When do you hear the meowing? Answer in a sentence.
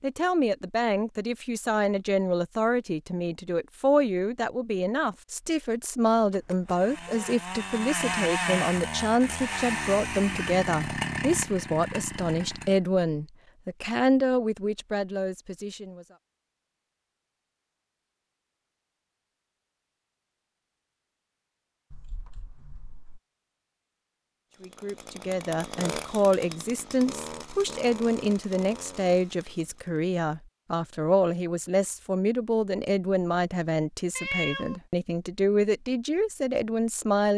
The meowing can be heard from 6.3 to 7.3 s, from 21.9 to 23.2 s and from 34.1 to 34.8 s.